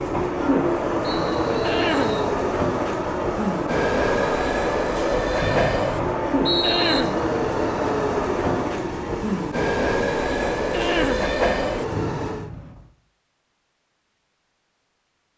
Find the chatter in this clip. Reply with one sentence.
You can hear the chatter from 0.2 to 8.8 s.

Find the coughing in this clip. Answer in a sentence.
You can hear the coughing from 1.6 to 2.2 s, from 6.6 to 7.2 s and from 10.7 to 11.3 s.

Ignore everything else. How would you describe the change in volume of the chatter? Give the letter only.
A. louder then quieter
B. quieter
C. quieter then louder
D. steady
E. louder
D.